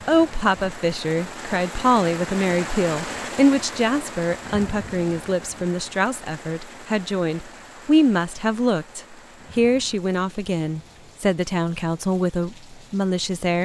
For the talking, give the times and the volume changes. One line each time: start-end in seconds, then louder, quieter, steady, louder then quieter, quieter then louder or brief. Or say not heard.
0.1-13.6 steady.